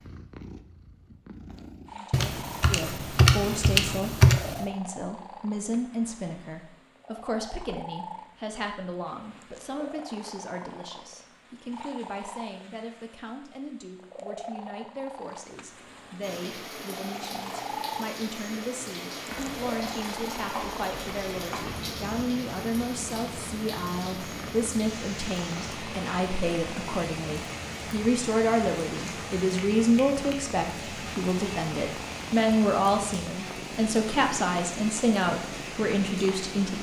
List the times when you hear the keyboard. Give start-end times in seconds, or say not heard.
2.1-4.7, 19.2-21.9.